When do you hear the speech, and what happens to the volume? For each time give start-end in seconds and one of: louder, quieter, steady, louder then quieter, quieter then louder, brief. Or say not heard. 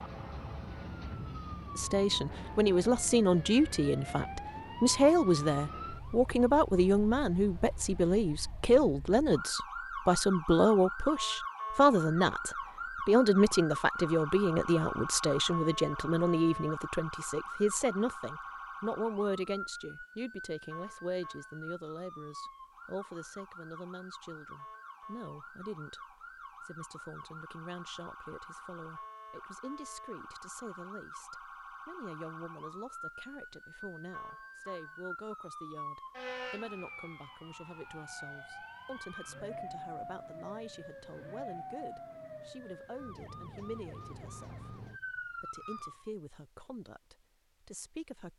1.8-48.3 quieter.